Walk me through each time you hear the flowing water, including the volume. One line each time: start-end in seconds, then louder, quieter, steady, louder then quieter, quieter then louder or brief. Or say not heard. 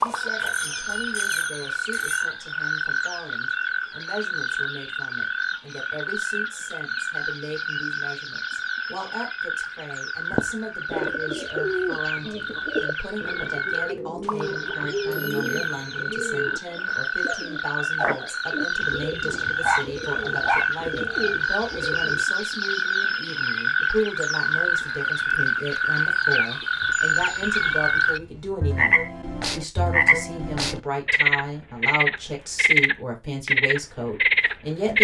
not heard.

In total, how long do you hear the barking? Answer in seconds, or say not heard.
2 s.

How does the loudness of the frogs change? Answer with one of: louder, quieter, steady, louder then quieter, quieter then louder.
louder.